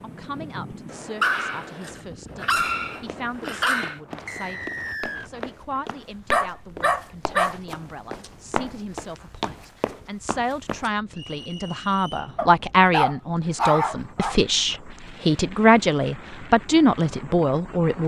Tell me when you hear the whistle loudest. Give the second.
5 s.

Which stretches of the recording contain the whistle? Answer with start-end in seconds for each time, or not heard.
4.2-5.3, 11.1-12.3.